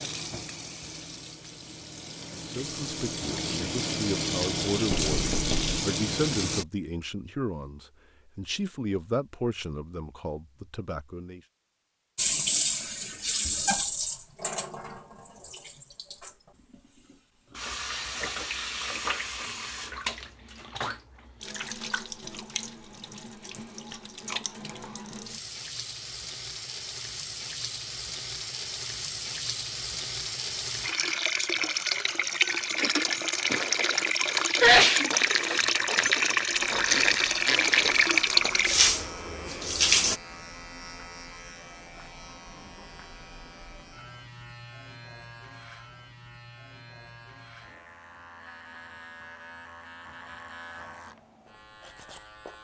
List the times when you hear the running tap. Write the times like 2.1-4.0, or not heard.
0.0-6.7, 12.2-40.2.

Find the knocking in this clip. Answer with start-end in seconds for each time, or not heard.
4.9-5.8.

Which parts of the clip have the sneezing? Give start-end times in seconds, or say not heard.
34.6-35.6.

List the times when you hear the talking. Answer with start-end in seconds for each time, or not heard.
2.4-11.4.